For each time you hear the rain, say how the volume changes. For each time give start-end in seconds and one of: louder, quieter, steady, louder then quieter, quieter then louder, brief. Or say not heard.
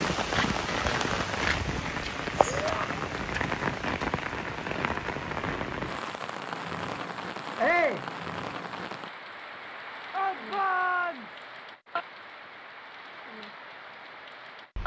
0.0-14.8 quieter.